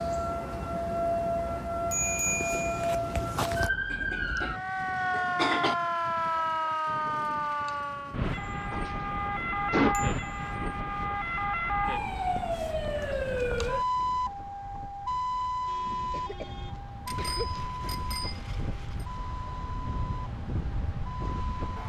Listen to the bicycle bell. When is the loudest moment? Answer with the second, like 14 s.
2 s.